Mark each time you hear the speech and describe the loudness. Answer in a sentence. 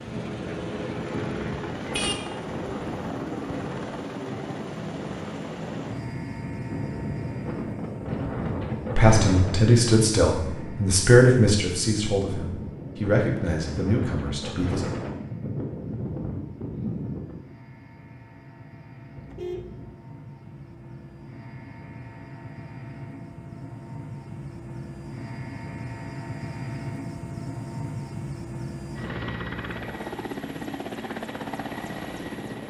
You can hear the speech from 8.9 to 14.8 s, getting quieter.